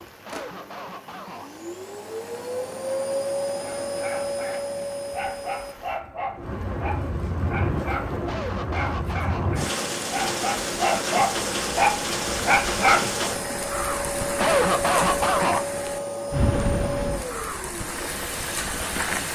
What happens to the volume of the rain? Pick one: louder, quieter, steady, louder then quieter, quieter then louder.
louder.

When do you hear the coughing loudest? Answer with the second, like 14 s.
15 s.